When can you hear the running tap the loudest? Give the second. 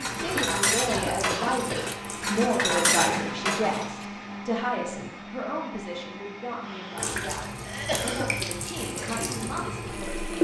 10 s.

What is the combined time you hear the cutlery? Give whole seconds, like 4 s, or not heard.
4 s.